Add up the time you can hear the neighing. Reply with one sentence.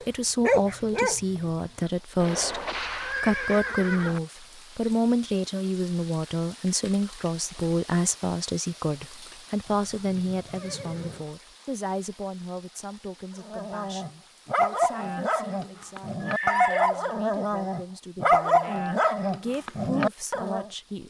The neighing can be heard for 5 seconds in total.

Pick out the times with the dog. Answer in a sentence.
You can hear the dog from 0.0 to 1.5 s and from 13.4 to 20.7 s.